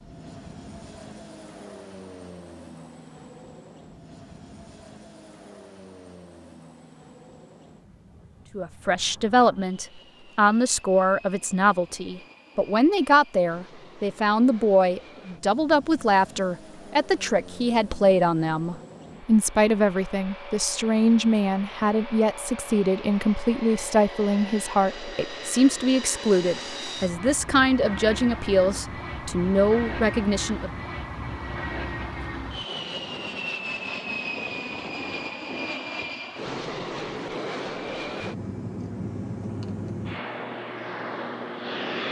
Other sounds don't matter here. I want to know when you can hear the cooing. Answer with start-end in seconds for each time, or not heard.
not heard.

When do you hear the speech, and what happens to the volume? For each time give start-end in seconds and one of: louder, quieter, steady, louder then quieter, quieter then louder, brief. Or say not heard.
8.6-30.7 steady.